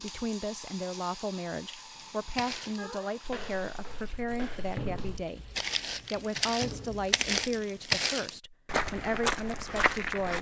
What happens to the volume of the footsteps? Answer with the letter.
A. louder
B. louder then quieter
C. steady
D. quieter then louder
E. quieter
D.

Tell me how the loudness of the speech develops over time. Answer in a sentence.
The volume of the speech stays about the same.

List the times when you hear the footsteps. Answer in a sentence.
You can hear the footsteps from 1.9 to 10.3 s.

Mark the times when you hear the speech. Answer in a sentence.
The speech can be heard from 0.0 to 5.5 s and from 6.1 to 10.3 s.